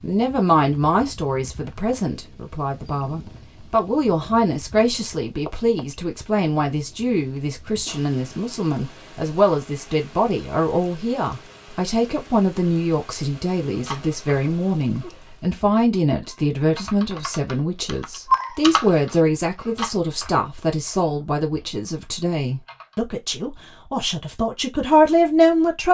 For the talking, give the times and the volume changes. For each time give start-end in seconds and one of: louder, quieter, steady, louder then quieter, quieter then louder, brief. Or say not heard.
0.0-25.9 steady.